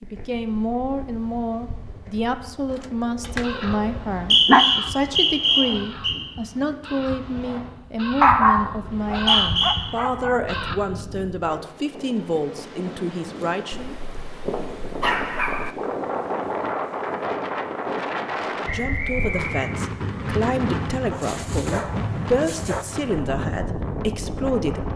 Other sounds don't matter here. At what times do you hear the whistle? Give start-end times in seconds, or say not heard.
3.9-6.2, 8.8-9.8, 18.6-19.8.